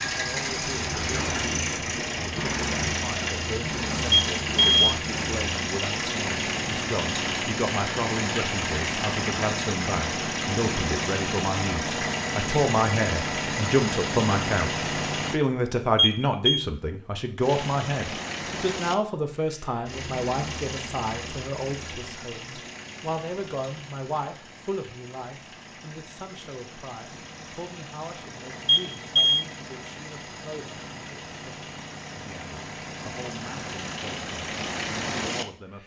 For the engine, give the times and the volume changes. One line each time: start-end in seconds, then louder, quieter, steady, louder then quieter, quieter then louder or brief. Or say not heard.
0.0-15.4 steady
17.4-35.8 quieter then louder.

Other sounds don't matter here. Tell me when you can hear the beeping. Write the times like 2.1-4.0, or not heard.
4.1-5.0, 15.9-16.6, 28.6-29.4.